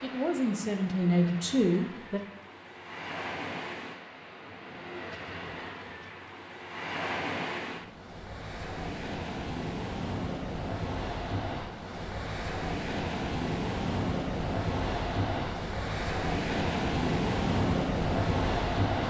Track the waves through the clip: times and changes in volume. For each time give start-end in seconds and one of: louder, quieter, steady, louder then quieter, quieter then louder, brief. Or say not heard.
0.0-19.0 louder.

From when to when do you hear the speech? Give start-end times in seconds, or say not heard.
0.0-2.2.